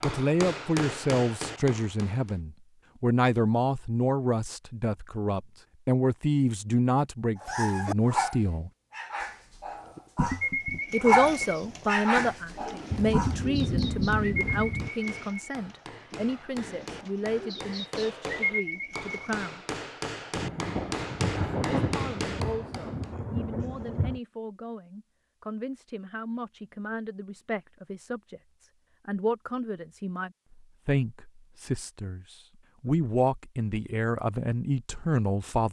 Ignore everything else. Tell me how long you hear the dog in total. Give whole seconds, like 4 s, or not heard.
6 s.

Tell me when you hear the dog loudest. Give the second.
11 s.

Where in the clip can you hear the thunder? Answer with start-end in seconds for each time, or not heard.
12.9-14.9, 20.4-24.2.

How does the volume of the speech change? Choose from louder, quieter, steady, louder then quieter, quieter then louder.
quieter then louder.